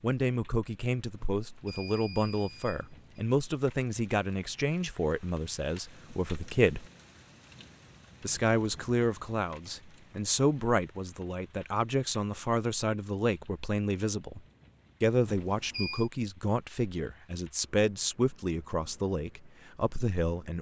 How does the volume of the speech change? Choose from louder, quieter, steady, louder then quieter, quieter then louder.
steady.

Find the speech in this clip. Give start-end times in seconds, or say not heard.
0.0-6.8, 8.2-14.4, 15.0-20.5.